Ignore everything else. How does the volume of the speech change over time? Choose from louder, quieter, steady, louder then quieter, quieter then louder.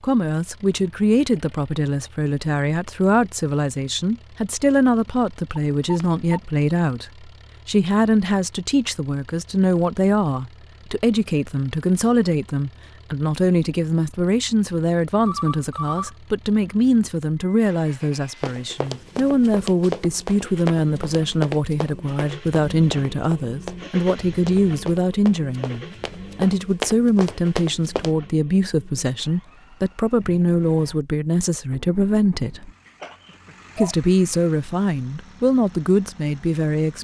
steady.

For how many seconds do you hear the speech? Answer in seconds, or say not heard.
36 s.